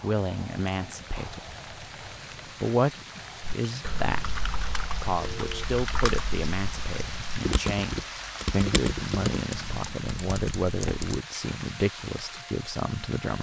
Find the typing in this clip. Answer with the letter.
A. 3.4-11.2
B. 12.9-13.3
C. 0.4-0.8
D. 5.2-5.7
A.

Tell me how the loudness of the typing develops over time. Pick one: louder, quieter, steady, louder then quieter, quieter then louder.
louder then quieter.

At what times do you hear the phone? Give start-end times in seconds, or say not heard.
5.2-5.7.